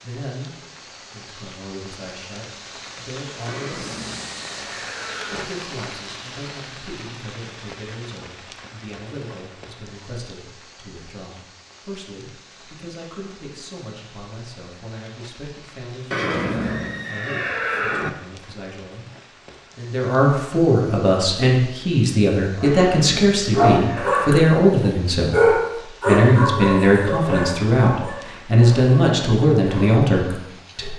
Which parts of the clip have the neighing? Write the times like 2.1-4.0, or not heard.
3.5-5.5, 16.1-18.1, 22.6-24.2.